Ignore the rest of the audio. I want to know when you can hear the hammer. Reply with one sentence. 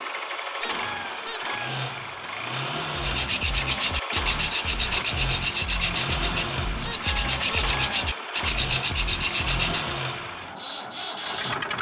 You can't hear the hammer here.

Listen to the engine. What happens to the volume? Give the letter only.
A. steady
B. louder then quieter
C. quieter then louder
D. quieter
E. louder
A.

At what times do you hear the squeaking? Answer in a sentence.
You can hear the squeaking from 0.6 to 1.9 s and from 6.8 to 8.1 s.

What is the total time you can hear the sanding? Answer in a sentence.
You can hear the sanding for 7 seconds altogether.